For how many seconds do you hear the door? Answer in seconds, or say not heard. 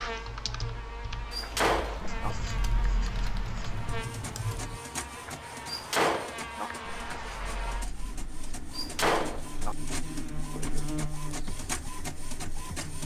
3 s.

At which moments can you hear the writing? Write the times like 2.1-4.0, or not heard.
2.0-4.0, 6.8-8.8.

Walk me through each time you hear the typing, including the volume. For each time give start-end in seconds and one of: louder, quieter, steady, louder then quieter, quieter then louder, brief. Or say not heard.
0.0-4.8 quieter then louder
11.4-12.9 brief.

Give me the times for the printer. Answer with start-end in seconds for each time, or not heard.
3.8-13.0.